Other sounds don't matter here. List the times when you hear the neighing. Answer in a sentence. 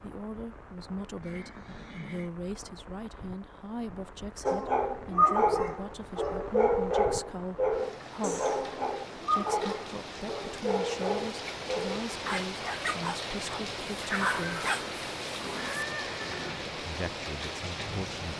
You can hear the neighing from 1.2 to 2.3 s and from 14.2 to 16.6 s.